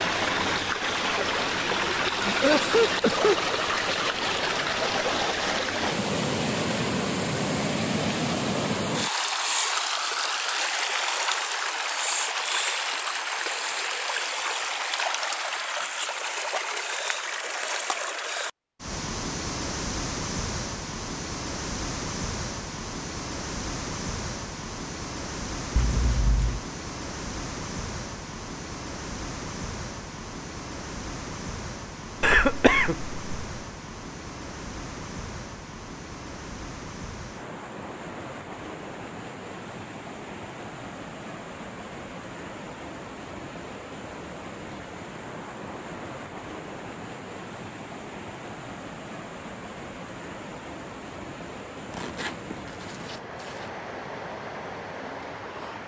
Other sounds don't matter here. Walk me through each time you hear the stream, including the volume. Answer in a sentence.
You can hear the stream from 0.0 to 55.8 s, getting quieter.